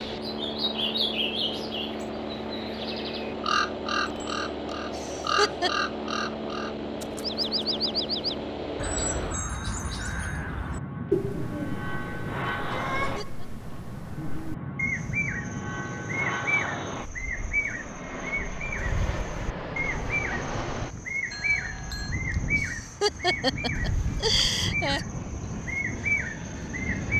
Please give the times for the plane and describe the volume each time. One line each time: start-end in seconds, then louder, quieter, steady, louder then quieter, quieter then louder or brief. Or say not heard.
0.0-27.1 steady.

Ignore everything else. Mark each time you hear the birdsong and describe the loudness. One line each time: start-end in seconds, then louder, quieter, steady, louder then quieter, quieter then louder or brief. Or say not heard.
0.1-27.1 steady.